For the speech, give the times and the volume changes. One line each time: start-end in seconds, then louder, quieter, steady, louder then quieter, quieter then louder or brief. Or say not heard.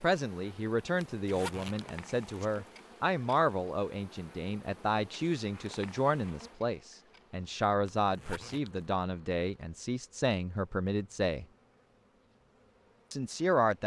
0.0-11.4 steady
13.1-13.8 brief.